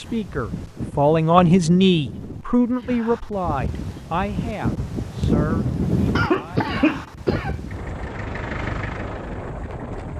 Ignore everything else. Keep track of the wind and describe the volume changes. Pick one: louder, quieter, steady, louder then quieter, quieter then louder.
louder then quieter.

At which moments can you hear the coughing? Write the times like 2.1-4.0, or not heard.
6.2-7.5.